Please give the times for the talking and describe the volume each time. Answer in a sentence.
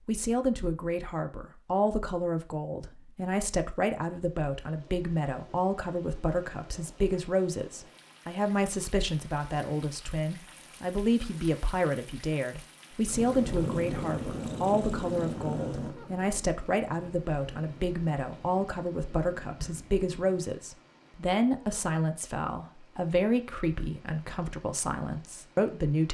The talking can be heard from 0.1 to 26.0 s, at a steady volume.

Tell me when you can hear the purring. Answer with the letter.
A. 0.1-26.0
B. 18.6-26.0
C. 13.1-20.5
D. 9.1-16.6
C.